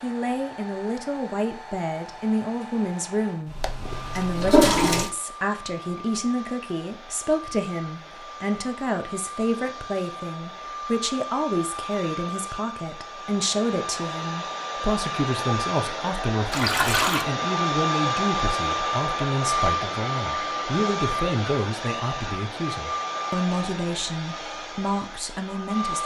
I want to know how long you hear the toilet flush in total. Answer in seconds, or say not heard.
2 s.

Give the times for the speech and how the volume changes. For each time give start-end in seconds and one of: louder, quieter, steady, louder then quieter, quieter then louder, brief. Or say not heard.
0.0-26.0 steady.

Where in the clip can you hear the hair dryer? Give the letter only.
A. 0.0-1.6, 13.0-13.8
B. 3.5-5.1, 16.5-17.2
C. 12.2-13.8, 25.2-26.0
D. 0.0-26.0
D.